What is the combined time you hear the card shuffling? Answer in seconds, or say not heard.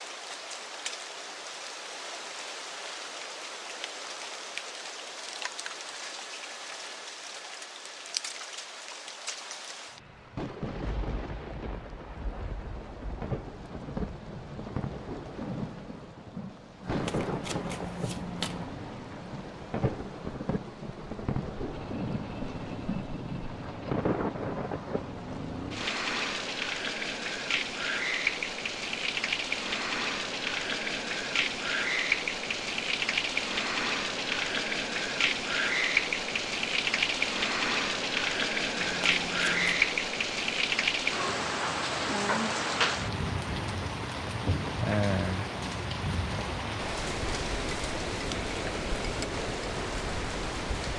3 s.